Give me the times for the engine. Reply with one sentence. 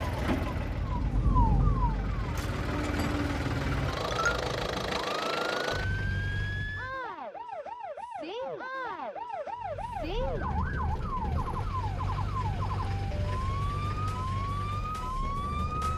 The engine can be heard from 0.0 to 7.0 s and from 9.6 to 15.9 s.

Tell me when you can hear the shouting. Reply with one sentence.
You can't hear the shouting here.